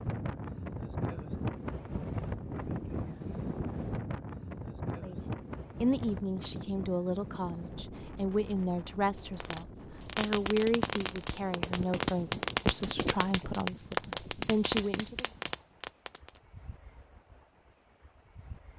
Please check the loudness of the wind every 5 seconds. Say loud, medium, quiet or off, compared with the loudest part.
loud, medium, quiet, quiet.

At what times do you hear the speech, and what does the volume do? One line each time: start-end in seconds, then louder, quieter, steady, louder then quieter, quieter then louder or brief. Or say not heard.
5.0-15.2 steady.